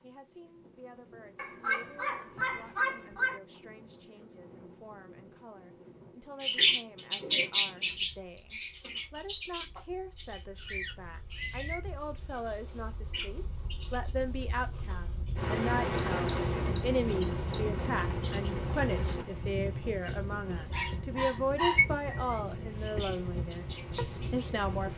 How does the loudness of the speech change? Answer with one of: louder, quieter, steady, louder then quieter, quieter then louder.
louder.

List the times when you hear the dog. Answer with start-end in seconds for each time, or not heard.
1.4-3.4, 20.7-22.2.